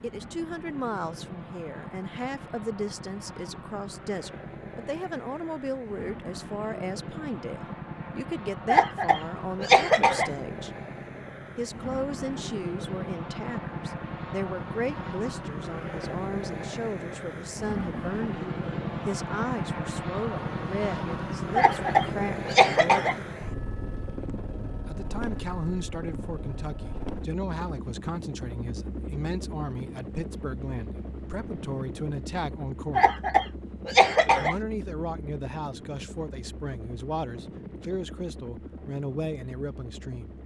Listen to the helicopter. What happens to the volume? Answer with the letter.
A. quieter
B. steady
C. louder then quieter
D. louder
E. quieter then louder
C.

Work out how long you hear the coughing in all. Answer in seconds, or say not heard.
5 s.